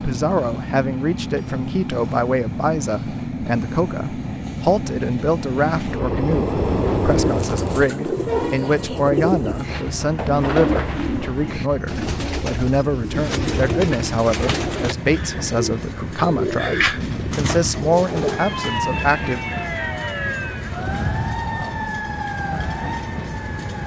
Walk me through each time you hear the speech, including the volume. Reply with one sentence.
The speech can be heard from 0.0 to 19.6 s, at a steady volume.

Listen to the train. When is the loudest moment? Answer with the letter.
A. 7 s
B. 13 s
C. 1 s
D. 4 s
A.